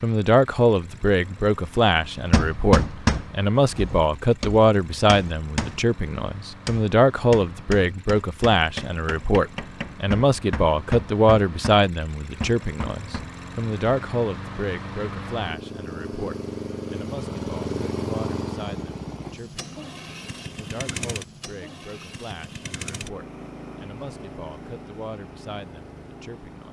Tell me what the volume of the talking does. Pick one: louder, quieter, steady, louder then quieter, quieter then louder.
quieter.